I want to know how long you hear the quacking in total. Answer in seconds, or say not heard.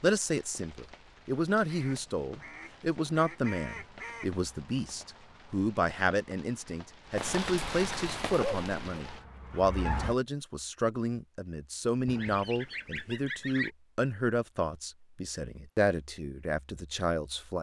4 s.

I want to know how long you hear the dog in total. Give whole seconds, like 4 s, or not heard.
2 s.